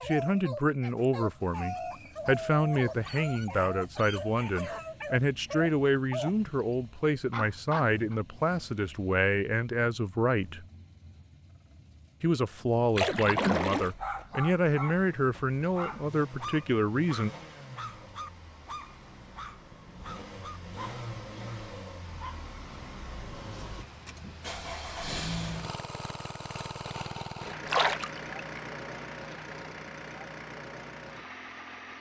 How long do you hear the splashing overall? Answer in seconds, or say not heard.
2 s.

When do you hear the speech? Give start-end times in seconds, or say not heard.
0.0-10.7, 12.2-17.3.